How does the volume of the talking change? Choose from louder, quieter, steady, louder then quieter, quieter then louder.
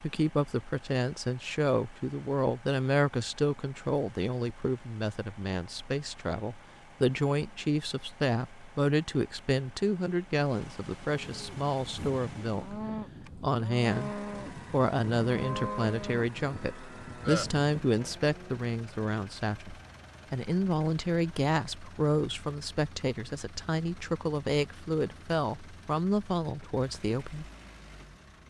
steady.